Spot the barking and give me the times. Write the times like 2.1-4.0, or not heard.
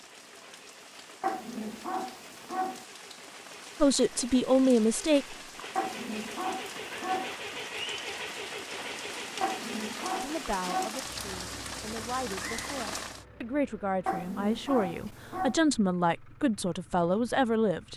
1.2-2.9, 5.8-7.4, 9.4-10.9, 14.1-15.6.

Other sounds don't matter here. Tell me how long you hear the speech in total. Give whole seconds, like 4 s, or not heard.
9 s.